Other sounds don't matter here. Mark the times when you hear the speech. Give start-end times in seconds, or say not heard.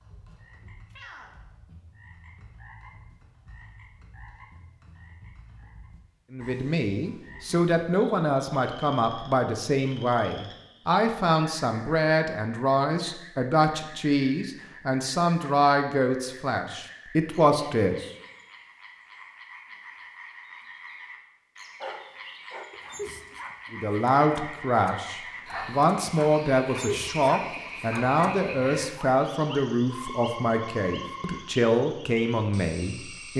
6.3-18.1, 23.7-33.3.